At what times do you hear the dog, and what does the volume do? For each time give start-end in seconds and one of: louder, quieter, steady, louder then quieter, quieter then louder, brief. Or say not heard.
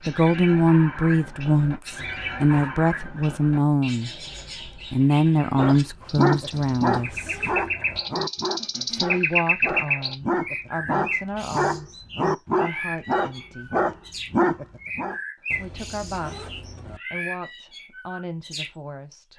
5.5-15.2 quieter then louder.